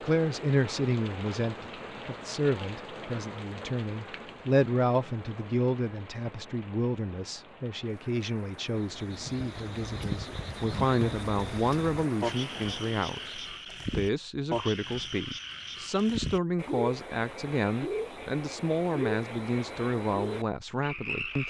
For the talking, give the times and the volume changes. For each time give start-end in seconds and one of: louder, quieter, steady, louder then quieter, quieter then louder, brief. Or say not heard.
0.0-21.4 steady.